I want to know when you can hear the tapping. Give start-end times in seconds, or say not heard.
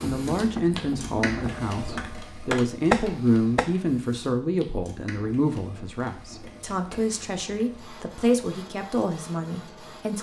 0.0-3.8.